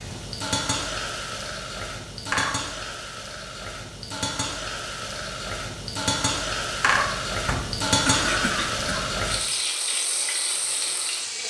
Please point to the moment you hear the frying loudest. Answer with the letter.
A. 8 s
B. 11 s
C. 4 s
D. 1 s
A.